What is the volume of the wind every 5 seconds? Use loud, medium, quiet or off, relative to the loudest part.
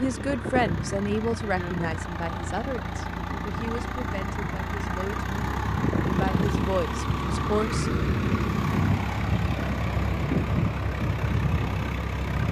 medium, loud, loud.